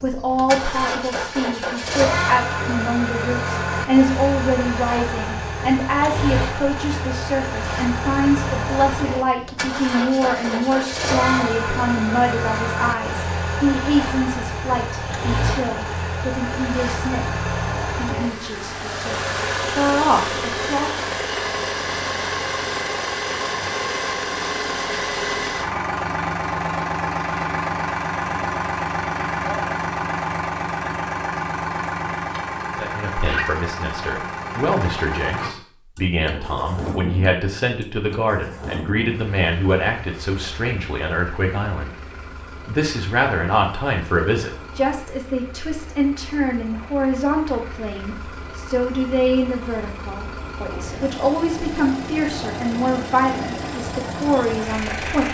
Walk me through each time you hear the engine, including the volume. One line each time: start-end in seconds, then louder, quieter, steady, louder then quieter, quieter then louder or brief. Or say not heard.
0.0-55.3 quieter.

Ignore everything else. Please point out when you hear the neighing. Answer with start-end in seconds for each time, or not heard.
not heard.